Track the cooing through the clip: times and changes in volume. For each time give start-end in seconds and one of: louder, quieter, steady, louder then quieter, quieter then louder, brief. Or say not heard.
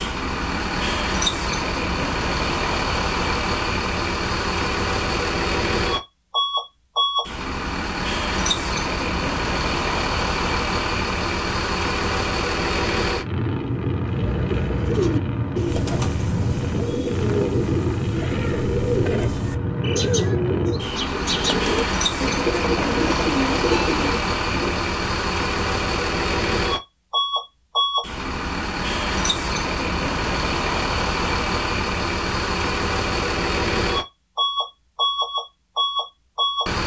14.0-24.8 steady.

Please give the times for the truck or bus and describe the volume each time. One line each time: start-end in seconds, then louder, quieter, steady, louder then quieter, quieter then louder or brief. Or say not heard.
0.0-36.8 steady.